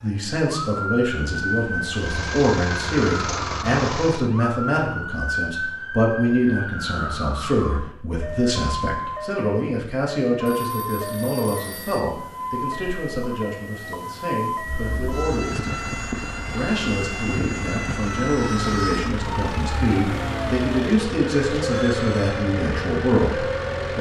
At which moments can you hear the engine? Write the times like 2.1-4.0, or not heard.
1.9-4.3, 14.6-23.9.